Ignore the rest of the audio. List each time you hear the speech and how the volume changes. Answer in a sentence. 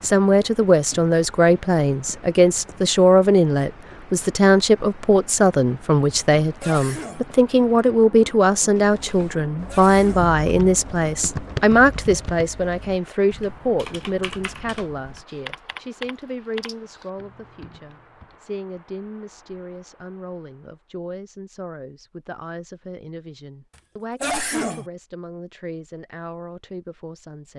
You can hear the speech from 0.0 to 27.5 s, getting quieter.